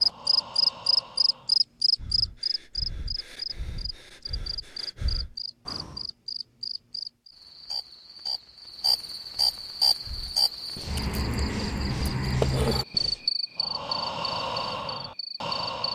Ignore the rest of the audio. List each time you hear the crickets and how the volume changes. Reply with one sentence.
The crickets can be heard from 0.0 to 15.9 s, getting quieter then louder.